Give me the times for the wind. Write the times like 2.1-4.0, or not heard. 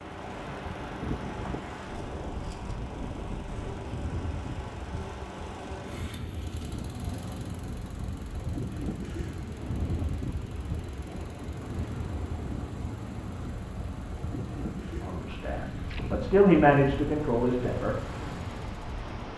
0.0-19.3.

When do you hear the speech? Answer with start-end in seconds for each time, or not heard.
15.1-17.9.